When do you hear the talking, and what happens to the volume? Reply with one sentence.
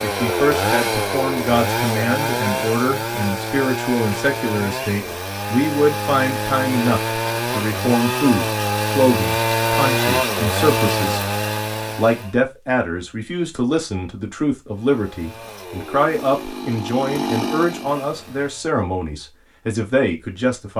You can hear the talking from 0.0 to 11.2 s, at a steady volume; and from 11.9 to 20.7 s, at a steady volume.